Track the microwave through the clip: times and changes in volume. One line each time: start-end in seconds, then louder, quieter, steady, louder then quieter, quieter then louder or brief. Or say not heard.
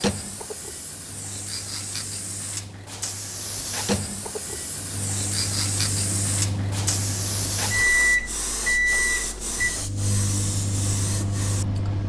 0.0-12.0 louder then quieter.